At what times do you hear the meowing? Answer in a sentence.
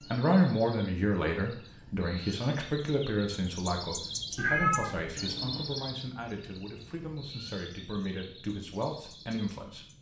The meowing can be heard from 4.3 to 5.2 s.